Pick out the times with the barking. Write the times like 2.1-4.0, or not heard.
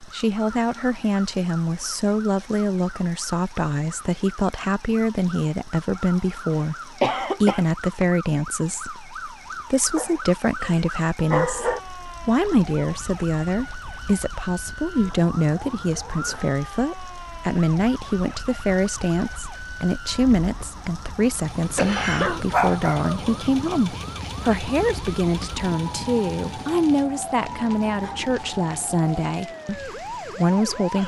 9.9-11.8, 21.9-23.4.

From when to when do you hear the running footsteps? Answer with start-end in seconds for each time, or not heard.
not heard.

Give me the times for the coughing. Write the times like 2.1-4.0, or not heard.
7.0-7.7, 21.8-22.4.